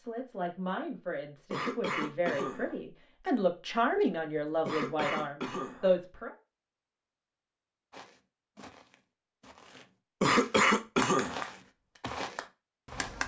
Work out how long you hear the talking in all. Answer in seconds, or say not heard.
6 s.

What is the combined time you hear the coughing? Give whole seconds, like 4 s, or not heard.
4 s.